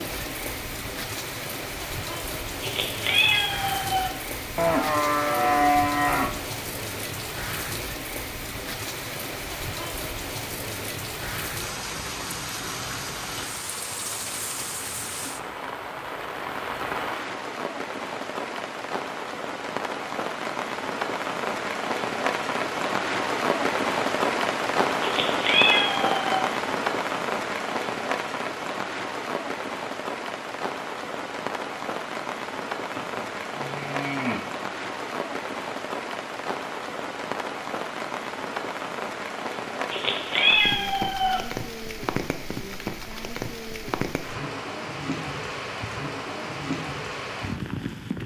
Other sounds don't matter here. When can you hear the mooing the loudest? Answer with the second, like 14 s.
6 s.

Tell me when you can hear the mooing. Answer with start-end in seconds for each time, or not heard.
4.5-6.4, 32.9-34.5.